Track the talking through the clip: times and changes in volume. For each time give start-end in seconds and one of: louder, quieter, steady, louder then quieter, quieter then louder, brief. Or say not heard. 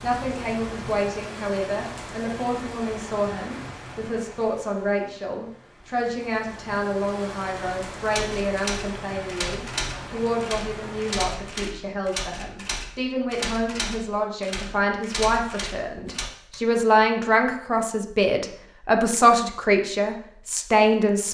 0.0-21.3 louder.